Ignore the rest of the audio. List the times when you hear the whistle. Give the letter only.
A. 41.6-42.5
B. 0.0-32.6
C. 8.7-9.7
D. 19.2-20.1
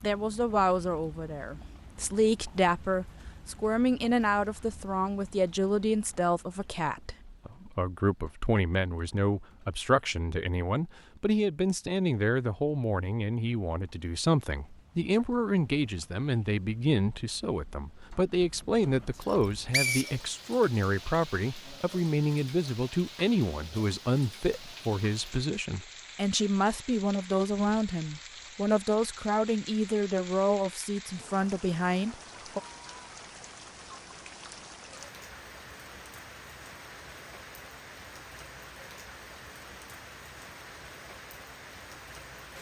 D.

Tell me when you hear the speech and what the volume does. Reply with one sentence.
You can hear the speech from 0.0 to 32.6 s, at a steady volume.